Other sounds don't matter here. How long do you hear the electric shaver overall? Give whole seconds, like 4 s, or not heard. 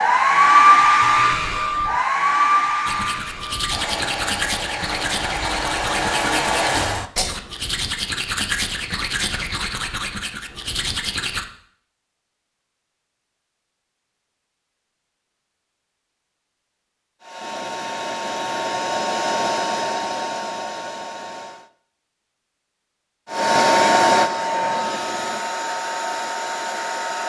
not heard.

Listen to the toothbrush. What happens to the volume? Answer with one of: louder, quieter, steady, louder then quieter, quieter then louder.
steady.